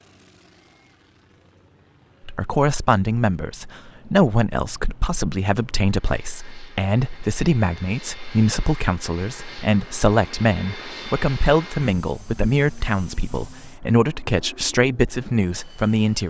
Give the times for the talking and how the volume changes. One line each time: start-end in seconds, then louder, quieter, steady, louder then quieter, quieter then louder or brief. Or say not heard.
2.2-16.2 steady.